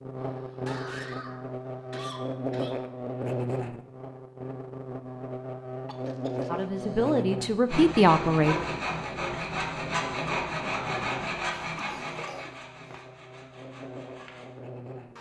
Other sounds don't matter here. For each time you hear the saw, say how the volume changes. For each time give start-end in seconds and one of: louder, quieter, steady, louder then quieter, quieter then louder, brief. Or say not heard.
7.7-14.6 quieter.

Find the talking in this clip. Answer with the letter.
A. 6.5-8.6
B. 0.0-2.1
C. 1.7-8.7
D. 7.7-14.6
A.